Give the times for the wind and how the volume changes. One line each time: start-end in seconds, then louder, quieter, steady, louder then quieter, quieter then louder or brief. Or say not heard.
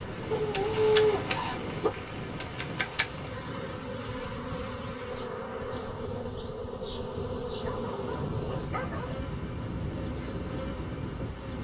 0.0-11.5 quieter then louder.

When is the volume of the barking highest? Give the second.
1 s.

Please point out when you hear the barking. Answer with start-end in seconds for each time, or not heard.
0.3-1.9, 7.6-9.2.